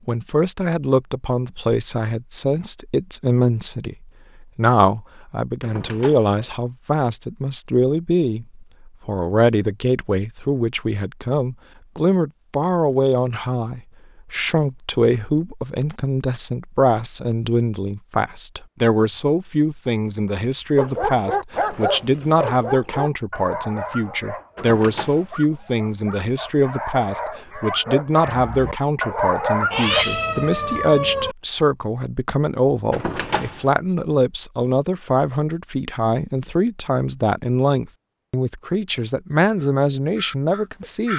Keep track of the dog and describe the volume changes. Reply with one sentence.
The volume of the dog goes down, then up.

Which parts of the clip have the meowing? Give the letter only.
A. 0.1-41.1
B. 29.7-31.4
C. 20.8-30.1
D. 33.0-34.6
B.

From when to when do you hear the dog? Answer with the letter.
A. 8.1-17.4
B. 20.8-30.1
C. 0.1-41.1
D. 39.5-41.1
B.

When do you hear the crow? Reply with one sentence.
The crow can be heard from 39.5 to 41.1 s.